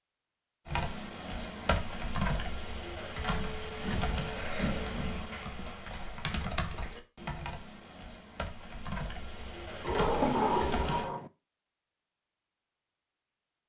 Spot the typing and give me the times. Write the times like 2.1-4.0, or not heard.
0.7-11.1.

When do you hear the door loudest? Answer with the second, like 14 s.
10 s.